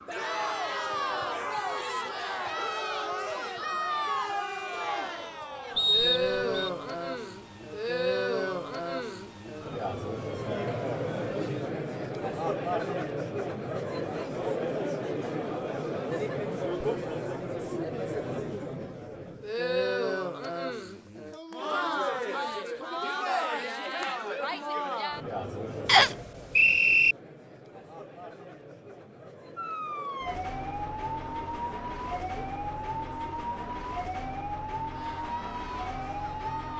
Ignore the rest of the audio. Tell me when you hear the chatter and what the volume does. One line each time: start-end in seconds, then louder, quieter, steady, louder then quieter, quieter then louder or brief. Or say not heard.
0.1-36.7 quieter.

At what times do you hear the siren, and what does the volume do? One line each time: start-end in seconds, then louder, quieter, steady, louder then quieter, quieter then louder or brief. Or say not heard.
0.0-11.5 steady
29.6-36.7 steady.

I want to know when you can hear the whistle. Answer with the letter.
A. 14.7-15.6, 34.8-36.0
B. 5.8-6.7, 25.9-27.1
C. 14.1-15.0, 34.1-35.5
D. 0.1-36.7
B.